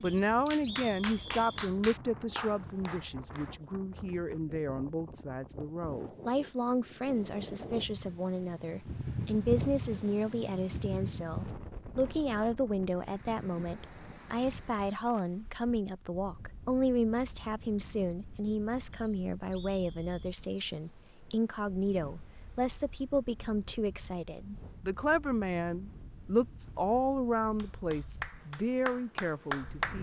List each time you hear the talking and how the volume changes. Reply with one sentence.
The talking can be heard from 0.0 to 29.9 s, at a steady volume.